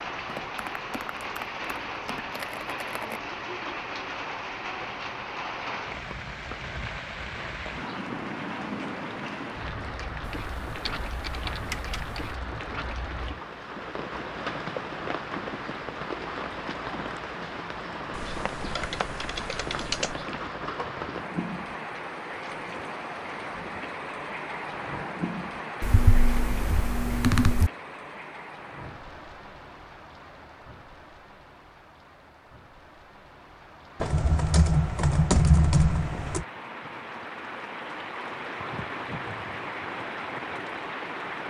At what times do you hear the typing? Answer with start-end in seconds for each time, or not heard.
0.2-3.2, 10.2-12.3, 18.1-20.1, 25.8-27.7, 34.0-36.5.